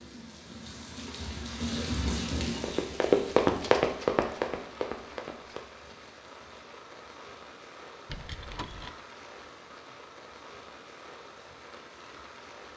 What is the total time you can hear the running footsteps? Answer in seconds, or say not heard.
3 s.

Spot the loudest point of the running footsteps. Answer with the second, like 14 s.
3 s.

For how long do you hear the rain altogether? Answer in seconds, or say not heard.
13 s.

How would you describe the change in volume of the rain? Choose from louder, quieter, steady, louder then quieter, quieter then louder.
quieter.